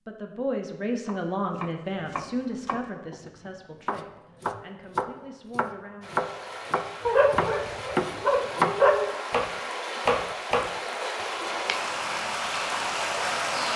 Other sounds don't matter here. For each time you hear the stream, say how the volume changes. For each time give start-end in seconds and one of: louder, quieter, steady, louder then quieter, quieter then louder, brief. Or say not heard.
6.0-13.7 louder.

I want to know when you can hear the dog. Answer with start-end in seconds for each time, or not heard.
7.0-9.1.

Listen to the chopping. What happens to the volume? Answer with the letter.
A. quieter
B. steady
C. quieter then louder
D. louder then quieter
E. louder
E.